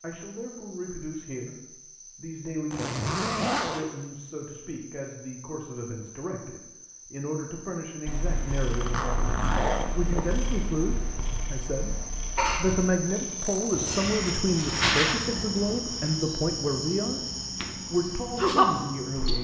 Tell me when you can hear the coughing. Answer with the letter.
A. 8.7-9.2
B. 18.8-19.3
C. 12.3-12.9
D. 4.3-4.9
C.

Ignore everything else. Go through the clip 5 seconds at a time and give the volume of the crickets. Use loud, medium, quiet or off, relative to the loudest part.
quiet, quiet, loud, loud.